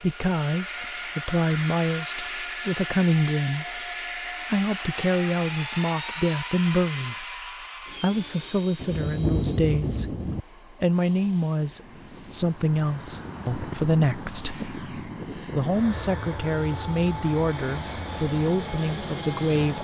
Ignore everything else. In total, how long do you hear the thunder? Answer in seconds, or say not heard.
2 s.